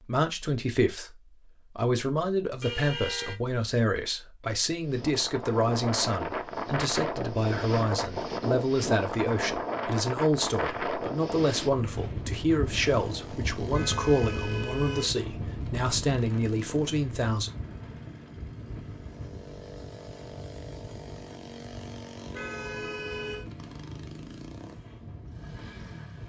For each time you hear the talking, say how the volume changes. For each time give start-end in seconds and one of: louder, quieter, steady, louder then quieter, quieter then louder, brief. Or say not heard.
0.0-17.5 steady.